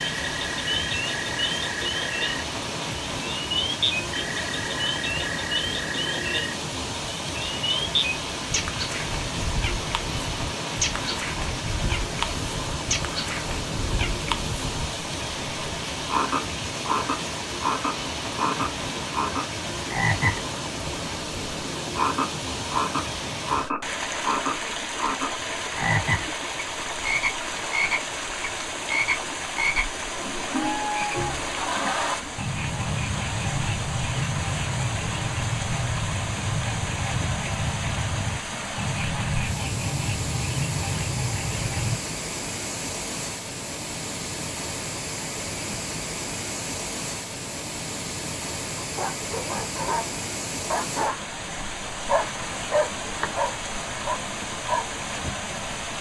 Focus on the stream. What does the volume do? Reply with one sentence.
The volume of the stream stays about the same.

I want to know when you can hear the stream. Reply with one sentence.
The stream can be heard from 0.0 to 55.9 s.